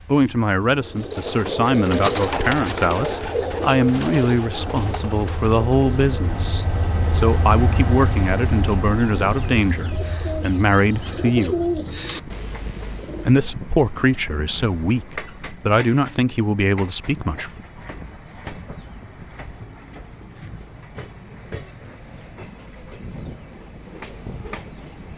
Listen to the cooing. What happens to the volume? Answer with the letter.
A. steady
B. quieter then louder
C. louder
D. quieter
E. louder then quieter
B.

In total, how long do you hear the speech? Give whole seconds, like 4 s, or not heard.
16 s.